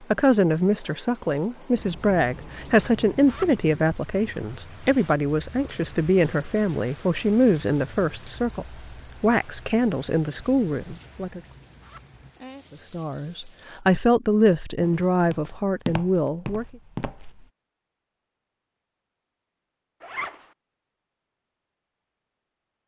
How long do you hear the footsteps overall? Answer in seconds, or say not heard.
3 s.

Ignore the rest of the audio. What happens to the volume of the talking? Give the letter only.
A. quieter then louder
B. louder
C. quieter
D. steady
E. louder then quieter
D.